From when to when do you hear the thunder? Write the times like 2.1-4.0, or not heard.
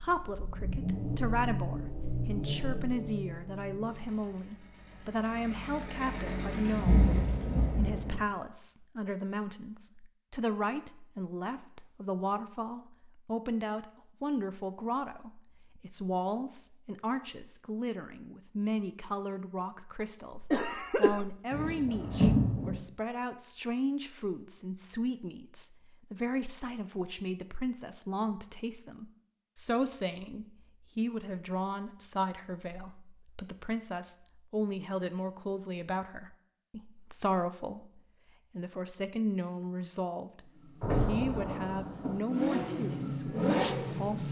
6.7-8.2, 21.5-22.8, 40.8-42.2.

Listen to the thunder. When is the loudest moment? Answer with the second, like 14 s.
22 s.